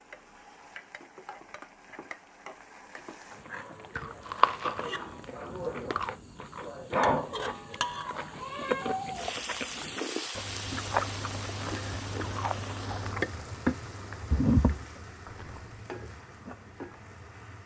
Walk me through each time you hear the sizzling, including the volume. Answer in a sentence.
You can hear the sizzling from 0.0 to 17.6 s, getting louder then quieter.